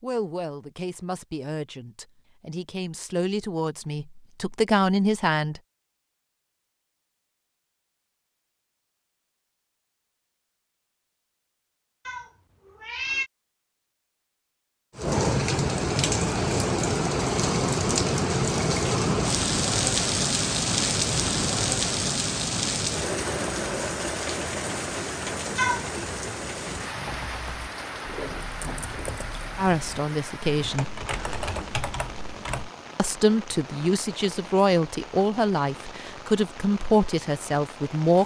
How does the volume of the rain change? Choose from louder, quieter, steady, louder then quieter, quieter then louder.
quieter.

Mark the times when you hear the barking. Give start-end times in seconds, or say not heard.
not heard.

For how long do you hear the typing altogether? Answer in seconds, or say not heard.
6 s.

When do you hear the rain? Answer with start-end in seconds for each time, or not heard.
14.9-38.2.